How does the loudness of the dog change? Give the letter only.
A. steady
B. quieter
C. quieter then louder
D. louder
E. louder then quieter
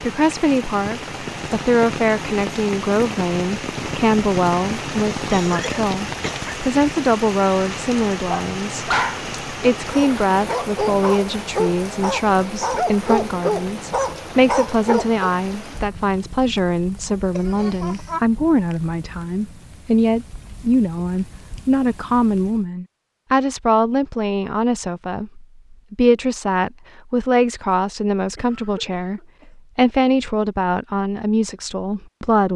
D.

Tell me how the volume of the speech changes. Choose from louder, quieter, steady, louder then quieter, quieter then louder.
steady.